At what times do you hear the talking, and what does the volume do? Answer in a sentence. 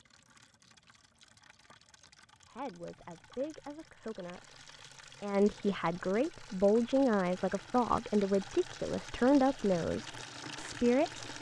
The talking can be heard from 2.5 to 11.3 s, getting louder.